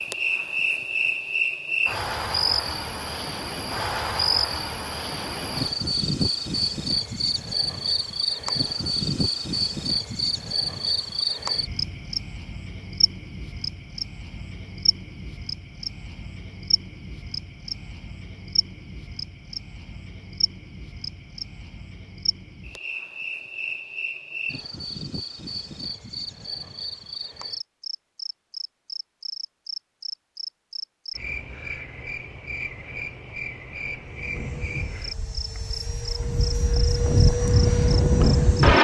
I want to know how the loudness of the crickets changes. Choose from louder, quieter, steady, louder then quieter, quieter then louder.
quieter.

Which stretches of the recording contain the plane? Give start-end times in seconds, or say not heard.
34.0-38.7.